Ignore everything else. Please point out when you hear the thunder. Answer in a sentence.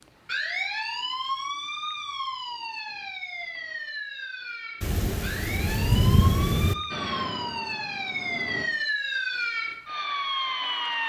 The thunder can be heard from 4.8 to 6.8 s.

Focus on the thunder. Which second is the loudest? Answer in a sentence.
The loudest moment of the thunder is at 6 seconds.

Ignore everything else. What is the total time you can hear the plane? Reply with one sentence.
The plane can be heard for 2 seconds in total.